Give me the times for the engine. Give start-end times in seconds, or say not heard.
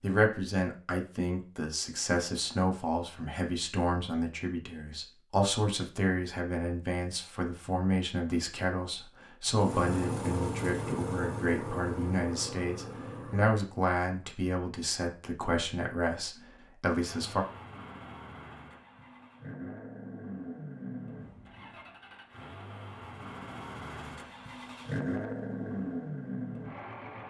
9.4-13.6, 16.9-27.2.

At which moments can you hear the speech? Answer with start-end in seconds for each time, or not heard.
0.0-17.4.